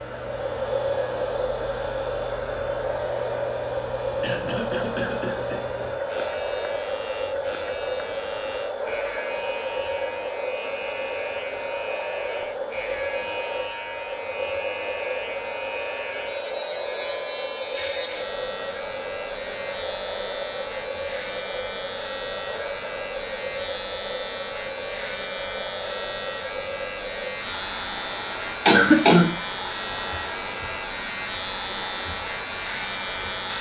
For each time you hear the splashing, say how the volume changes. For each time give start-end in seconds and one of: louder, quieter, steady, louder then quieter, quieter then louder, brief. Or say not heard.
not heard.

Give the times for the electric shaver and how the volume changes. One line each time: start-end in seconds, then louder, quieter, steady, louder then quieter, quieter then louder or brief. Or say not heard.
0.0-33.5 louder.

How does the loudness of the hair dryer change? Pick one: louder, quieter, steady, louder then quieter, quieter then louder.
quieter.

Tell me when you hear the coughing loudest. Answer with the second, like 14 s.
29 s.